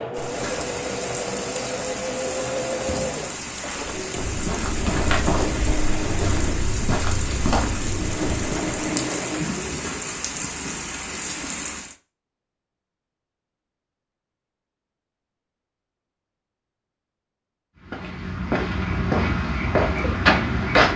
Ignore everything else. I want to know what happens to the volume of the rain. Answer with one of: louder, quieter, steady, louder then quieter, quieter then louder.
steady.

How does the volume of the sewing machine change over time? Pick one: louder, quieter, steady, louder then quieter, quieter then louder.
steady.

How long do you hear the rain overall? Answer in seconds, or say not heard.
12 s.